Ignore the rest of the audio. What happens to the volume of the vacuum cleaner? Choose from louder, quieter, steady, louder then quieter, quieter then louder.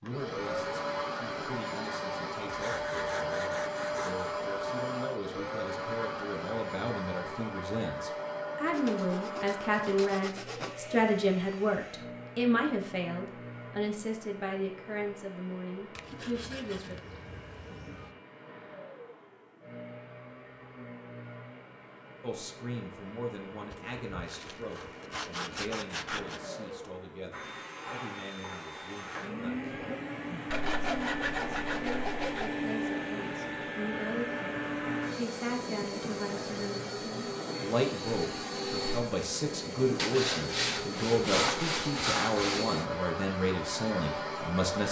quieter then louder.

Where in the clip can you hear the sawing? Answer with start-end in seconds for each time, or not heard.
2.5-4.3, 8.7-10.8, 15.9-18.1, 23.7-26.4, 30.5-32.5, 40.0-42.8.